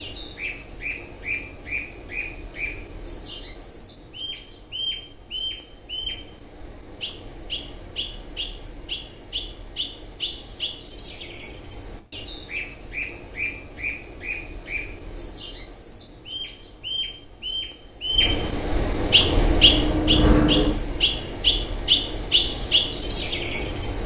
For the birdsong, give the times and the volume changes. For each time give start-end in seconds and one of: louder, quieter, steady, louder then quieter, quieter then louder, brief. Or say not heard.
0.0-24.0 louder.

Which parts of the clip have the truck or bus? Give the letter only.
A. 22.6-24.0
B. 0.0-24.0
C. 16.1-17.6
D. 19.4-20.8
D.